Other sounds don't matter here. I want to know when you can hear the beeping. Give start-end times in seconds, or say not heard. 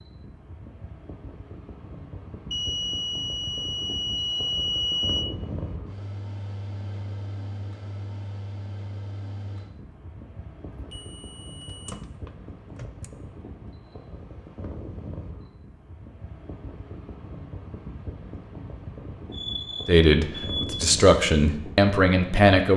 2.5-5.2, 10.7-13.1, 19.3-20.8.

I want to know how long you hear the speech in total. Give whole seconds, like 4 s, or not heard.
3 s.